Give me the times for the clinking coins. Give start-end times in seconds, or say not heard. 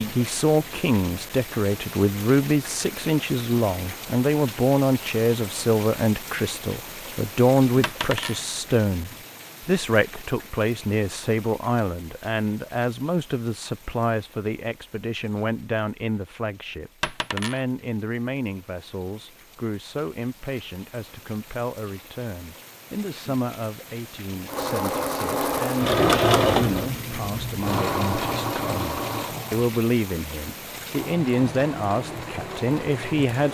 7.8-8.4, 17.0-17.6.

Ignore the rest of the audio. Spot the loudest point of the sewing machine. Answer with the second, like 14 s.
26 s.